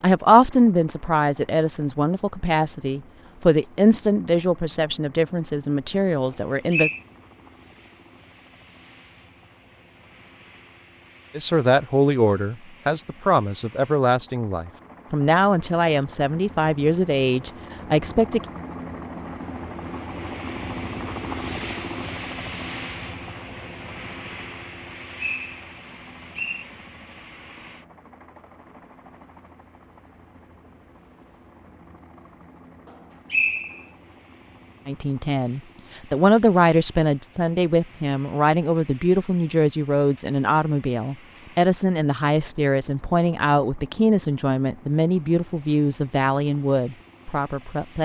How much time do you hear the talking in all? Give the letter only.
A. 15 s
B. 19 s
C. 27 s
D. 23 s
C.